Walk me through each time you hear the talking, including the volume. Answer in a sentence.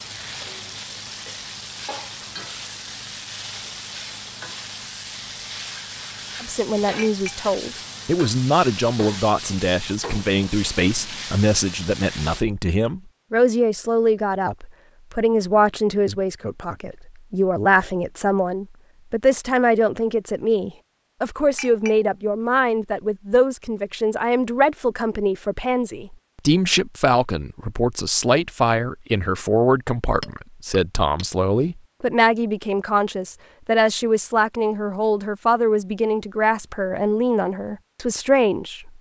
The talking can be heard from 6.4 to 38.9 s, at a steady volume.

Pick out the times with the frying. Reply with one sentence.
You can hear the frying from 0.0 to 12.4 s.